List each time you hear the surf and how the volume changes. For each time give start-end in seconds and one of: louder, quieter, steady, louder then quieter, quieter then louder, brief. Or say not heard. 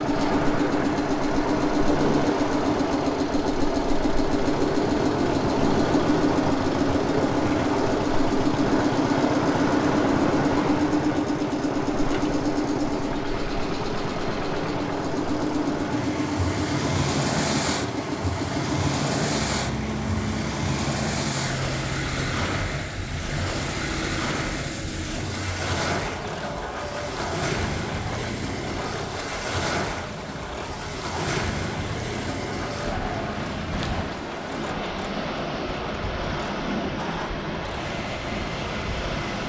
0.1-39.4 steady.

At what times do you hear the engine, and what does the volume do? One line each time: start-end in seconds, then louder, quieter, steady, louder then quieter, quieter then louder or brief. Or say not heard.
0.0-39.4 quieter.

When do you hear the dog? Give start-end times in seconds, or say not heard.
not heard.